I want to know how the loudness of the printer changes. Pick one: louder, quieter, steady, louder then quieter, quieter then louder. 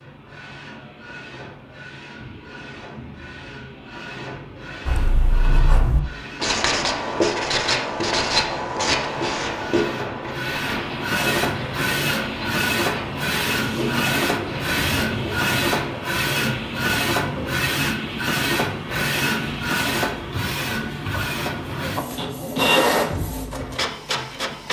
louder.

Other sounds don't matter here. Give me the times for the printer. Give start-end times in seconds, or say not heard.
0.0-24.6.